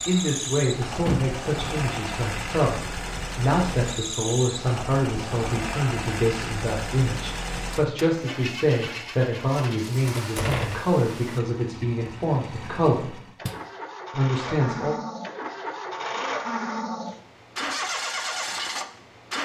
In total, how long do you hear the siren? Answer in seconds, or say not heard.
not heard.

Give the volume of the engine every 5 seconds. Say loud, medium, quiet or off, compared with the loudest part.
loud, loud, medium, loud.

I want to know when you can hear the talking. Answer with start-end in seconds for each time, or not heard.
0.1-13.2, 14.1-14.9.